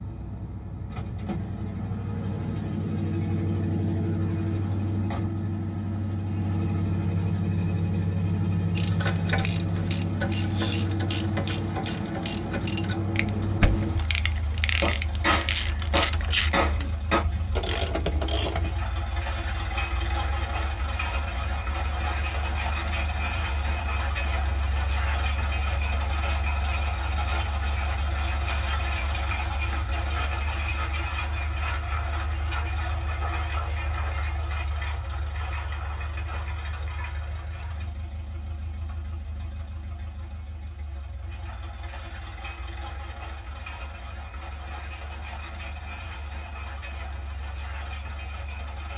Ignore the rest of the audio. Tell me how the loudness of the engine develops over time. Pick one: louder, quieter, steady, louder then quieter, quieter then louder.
quieter.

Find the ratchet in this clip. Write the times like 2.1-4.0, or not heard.
8.8-18.8.